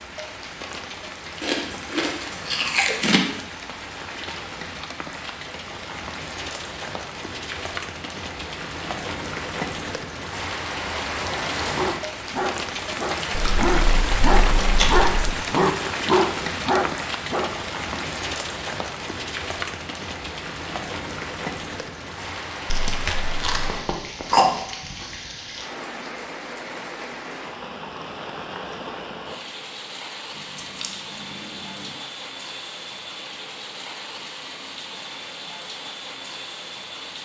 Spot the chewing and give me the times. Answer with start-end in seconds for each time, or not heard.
1.4-3.2, 13.3-15.1, 22.6-24.6, 30.4-31.9.